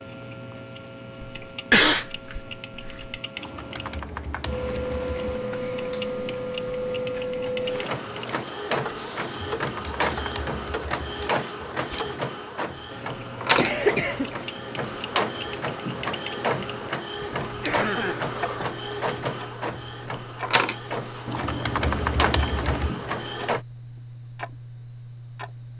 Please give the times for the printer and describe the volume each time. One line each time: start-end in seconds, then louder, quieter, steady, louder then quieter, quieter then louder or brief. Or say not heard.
4.5-23.6 steady.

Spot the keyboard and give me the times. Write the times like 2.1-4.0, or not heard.
3.4-5.2, 9.2-11.3, 21.2-22.9.